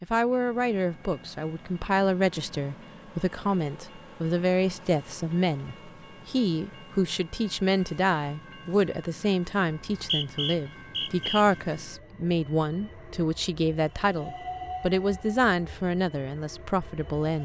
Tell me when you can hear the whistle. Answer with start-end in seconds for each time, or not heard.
9.7-11.4.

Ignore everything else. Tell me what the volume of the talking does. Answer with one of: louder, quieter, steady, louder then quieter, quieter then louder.
steady.